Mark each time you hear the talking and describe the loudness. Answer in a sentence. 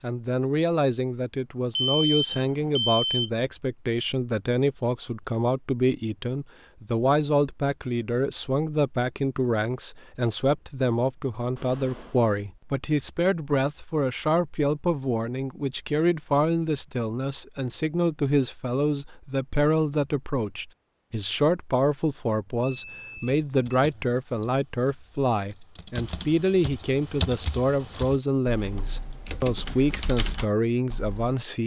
You can hear the talking from 0.0 to 31.6 s, at a steady volume.